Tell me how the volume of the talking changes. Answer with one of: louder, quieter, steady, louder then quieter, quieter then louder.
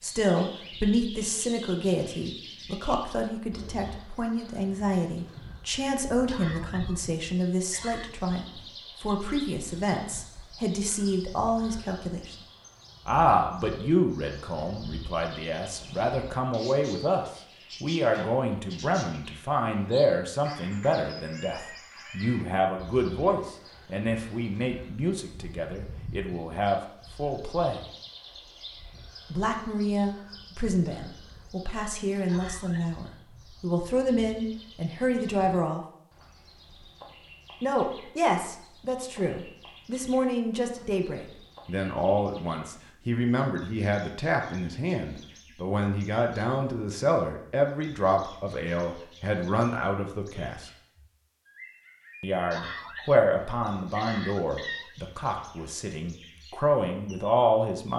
steady.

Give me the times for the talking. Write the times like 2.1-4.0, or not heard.
0.0-12.3, 13.1-27.9, 29.3-35.9, 37.6-50.7, 52.2-57.9.